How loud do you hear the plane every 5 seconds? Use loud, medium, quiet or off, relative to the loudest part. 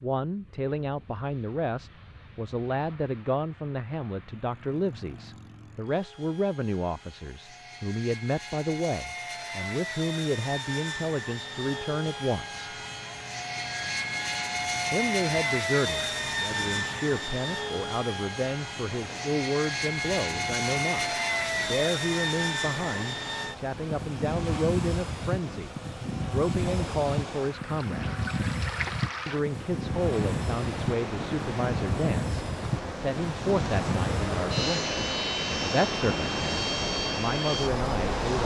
quiet, medium, loud, loud, loud, loud, loud, loud.